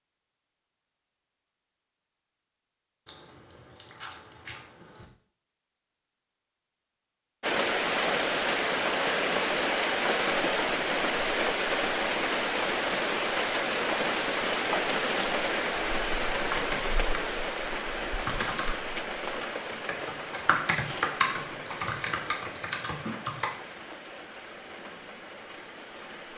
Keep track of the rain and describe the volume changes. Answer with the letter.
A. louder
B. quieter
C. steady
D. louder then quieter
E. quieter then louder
B.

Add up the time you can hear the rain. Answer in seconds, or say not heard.
19 s.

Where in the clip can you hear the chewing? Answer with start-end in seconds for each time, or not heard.
3.0-5.0, 20.6-21.1.